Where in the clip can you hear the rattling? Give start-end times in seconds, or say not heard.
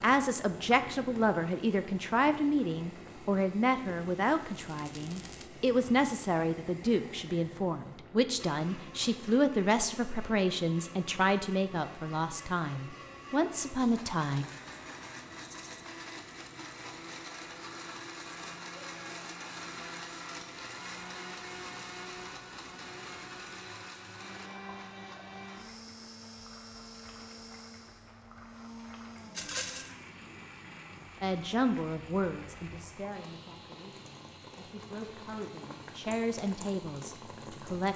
4.5-5.5, 15.4-15.8, 29.4-29.9.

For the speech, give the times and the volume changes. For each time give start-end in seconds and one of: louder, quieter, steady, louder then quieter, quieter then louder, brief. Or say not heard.
0.0-14.4 steady
31.2-37.9 quieter then louder.